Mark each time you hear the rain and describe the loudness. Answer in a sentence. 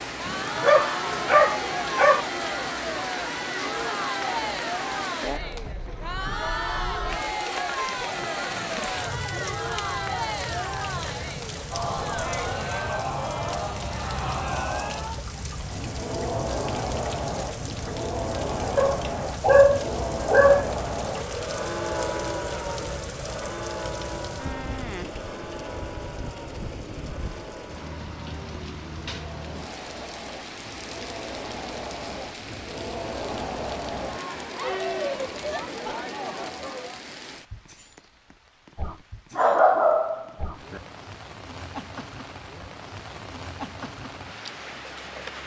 You can hear the rain from 0.0 to 45.4 s, getting quieter.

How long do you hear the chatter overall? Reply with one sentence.
You can hear the chatter for 37 seconds altogether.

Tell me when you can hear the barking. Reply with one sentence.
The barking can be heard from 0.2 to 2.2 s, from 18.8 to 20.8 s and from 39.4 to 40.8 s.